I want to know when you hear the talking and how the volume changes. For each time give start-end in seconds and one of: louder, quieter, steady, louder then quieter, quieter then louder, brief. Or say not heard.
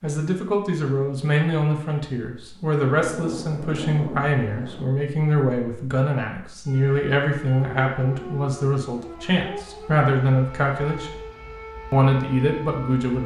0.0-11.1 steady
11.9-13.2 brief.